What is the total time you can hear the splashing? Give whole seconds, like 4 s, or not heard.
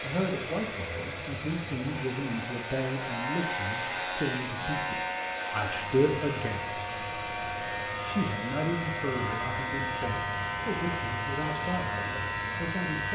not heard.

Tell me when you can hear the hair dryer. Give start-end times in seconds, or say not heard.
0.0-13.1.